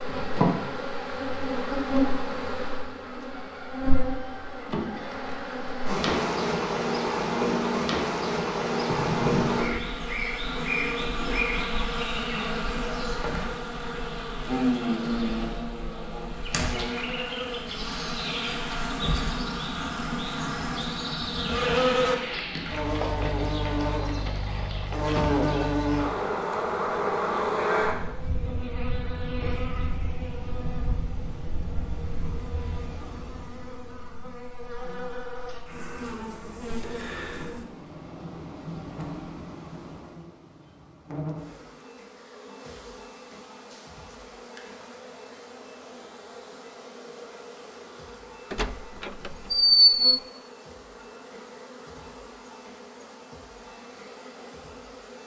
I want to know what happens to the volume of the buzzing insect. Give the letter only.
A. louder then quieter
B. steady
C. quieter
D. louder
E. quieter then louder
C.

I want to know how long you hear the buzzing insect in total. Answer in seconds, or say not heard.
55 s.